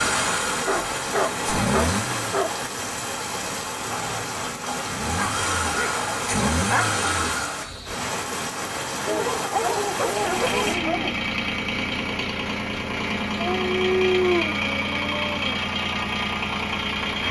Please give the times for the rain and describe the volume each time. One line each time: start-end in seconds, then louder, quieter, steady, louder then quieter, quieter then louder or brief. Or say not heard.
0.0-10.8 steady.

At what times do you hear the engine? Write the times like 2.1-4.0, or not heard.
0.0-2.3, 4.8-7.8, 9.9-17.2.